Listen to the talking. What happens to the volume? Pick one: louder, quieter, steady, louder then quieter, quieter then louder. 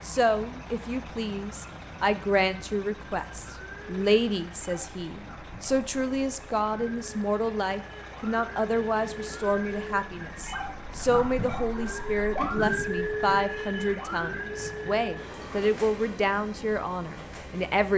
steady.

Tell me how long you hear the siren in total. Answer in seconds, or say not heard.
18 s.